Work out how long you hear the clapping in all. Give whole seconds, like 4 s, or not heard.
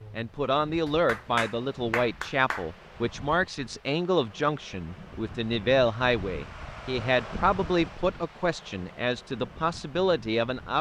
2 s.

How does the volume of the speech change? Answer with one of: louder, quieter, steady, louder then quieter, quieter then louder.
steady.